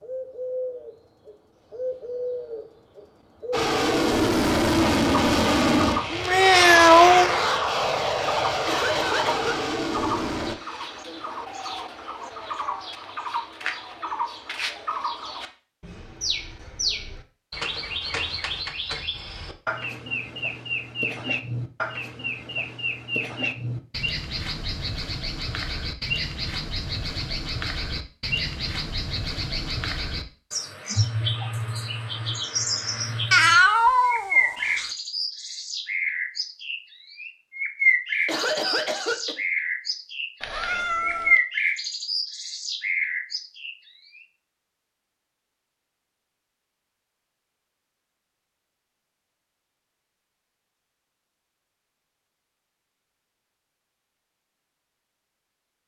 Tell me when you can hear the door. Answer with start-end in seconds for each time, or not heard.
not heard.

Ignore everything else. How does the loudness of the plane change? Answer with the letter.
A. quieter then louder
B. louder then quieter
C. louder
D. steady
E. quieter
E.